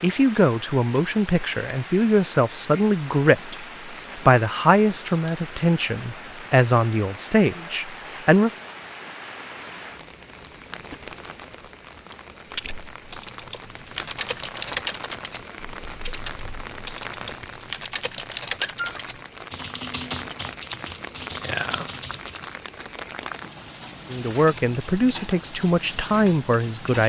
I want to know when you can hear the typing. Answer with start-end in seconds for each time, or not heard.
13.0-22.5.